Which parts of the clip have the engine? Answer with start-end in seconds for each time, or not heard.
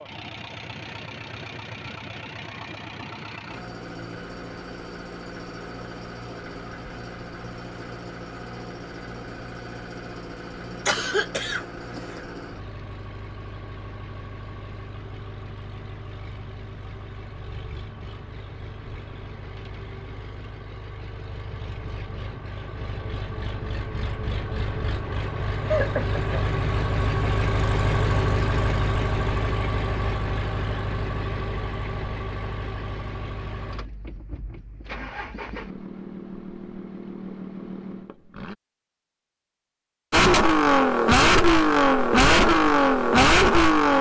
0.0-38.5, 40.1-43.9.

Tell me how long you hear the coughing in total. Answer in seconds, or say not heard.
2 s.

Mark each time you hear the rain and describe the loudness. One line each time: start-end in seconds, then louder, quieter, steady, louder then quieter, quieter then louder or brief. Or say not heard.
not heard.